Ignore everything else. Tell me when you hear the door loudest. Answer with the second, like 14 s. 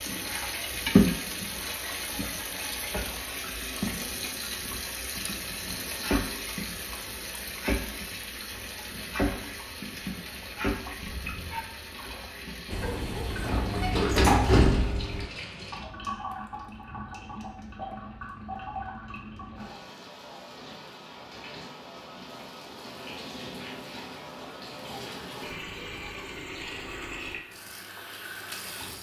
14 s.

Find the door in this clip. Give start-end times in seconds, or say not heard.
12.7-15.2.